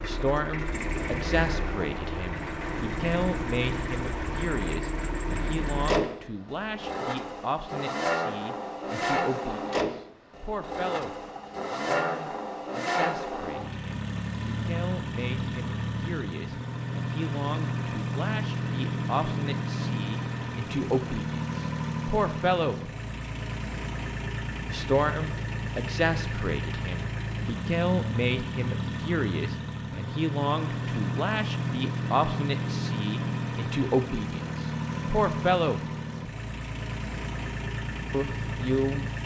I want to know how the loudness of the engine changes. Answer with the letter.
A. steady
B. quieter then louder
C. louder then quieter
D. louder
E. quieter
A.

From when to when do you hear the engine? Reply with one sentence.
The engine can be heard from 0.0 to 39.2 s.